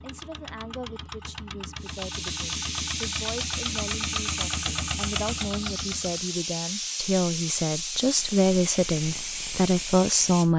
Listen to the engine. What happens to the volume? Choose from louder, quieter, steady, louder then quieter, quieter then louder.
louder.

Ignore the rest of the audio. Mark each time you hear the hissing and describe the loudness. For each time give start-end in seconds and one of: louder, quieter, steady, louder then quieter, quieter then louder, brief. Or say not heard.
1.8-10.5 steady.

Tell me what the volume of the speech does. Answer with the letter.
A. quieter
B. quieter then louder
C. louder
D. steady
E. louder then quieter
C.